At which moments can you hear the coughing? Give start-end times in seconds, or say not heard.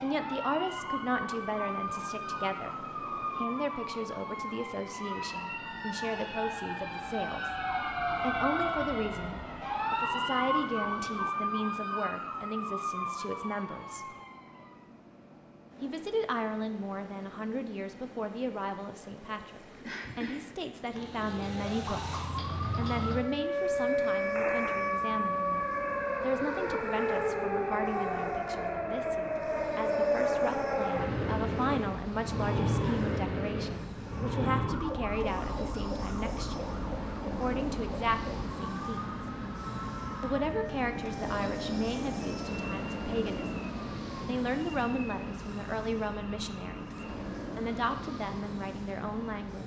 19.8-21.1.